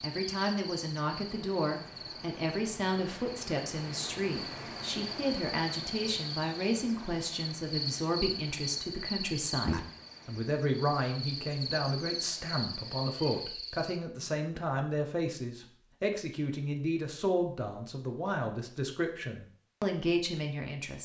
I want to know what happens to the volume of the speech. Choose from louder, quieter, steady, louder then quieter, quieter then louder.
steady.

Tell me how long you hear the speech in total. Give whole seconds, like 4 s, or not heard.
21 s.